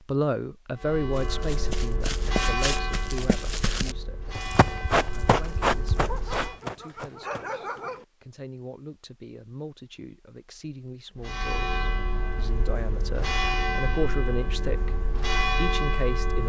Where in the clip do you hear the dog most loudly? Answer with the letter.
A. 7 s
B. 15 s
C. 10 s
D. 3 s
A.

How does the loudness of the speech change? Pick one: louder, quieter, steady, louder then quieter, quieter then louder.
quieter then louder.